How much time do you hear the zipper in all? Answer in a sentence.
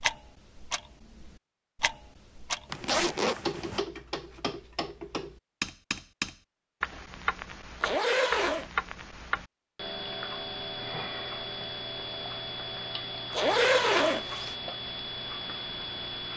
You can hear the zipper for 3 seconds altogether.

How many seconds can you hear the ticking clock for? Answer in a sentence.
The ticking clock can be heard for 16 seconds in total.